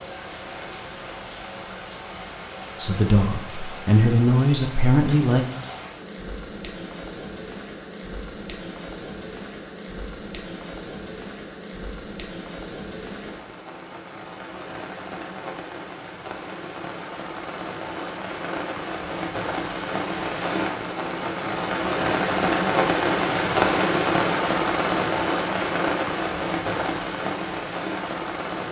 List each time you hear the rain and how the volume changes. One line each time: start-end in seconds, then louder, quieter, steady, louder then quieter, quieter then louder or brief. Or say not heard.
0.0-28.6 louder.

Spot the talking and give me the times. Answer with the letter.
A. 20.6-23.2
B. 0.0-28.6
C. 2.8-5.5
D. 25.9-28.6
C.